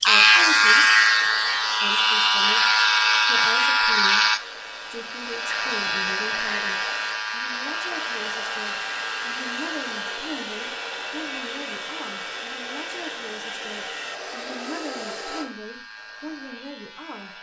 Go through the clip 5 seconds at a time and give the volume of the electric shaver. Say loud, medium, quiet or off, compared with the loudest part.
loud, medium, quiet, quiet.